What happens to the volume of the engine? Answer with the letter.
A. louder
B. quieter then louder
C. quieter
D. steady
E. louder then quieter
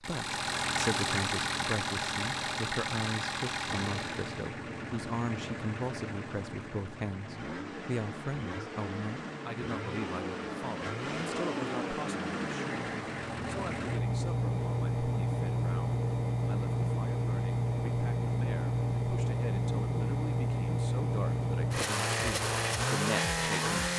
B.